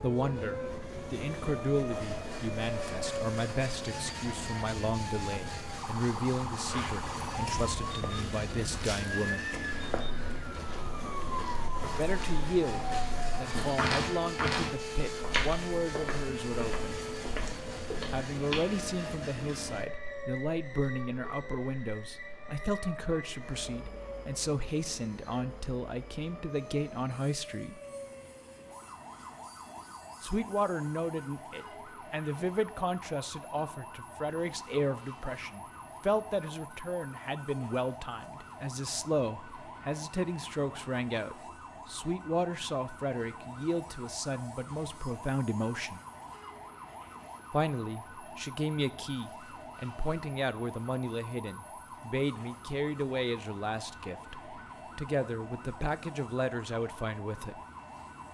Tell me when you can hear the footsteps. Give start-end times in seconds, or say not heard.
6.7-18.6.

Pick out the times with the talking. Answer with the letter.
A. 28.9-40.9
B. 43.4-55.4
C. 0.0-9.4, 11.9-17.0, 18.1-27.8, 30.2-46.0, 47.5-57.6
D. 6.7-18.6
C.